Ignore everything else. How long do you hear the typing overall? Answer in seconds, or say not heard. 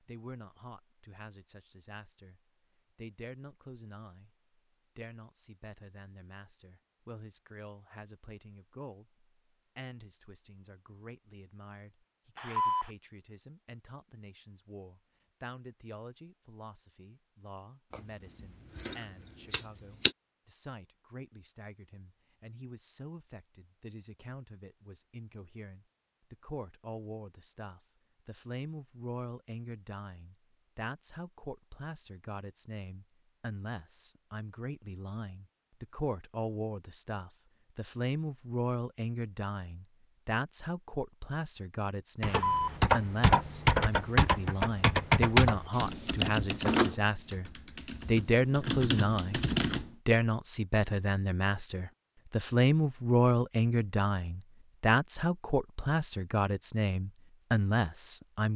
8 s.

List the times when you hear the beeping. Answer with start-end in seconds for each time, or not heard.
12.3-12.9, 42.2-42.8.